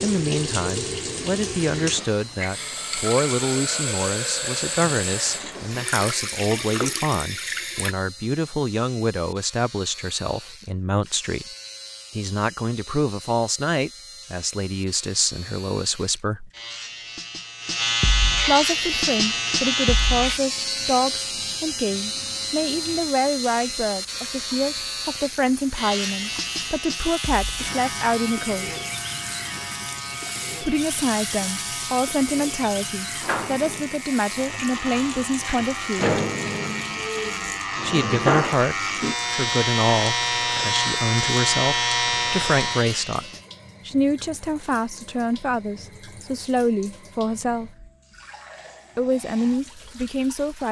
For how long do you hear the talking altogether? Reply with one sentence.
The talking can be heard for 43 seconds in total.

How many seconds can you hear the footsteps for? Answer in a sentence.
You can't hear the footsteps here.